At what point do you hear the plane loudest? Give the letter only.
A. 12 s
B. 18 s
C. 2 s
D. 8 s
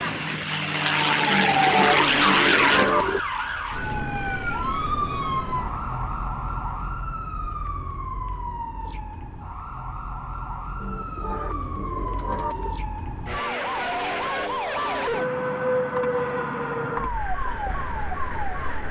C.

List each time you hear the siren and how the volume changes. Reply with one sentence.
You can hear the siren from 0.0 to 18.8 s, getting quieter then louder.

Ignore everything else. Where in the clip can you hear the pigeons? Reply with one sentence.
You can hear the pigeons from 1.2 to 3.2 s and from 10.8 to 12.8 s.